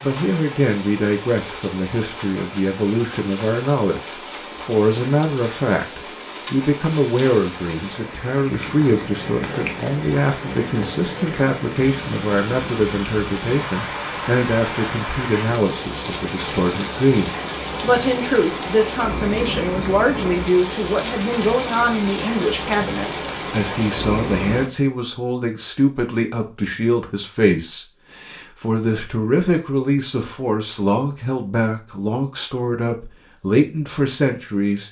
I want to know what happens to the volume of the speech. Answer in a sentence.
The loudness of the speech stays about the same.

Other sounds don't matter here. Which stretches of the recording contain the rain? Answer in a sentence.
You can hear the rain from 0.0 to 24.7 s.